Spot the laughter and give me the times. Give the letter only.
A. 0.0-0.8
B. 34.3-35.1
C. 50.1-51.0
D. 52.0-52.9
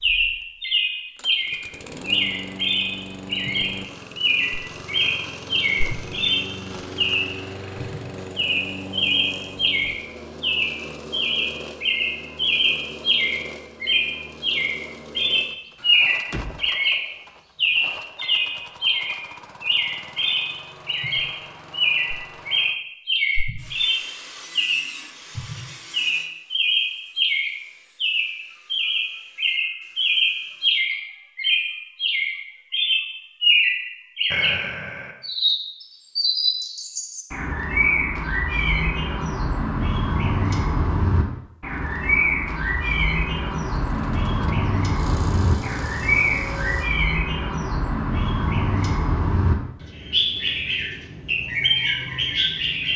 B.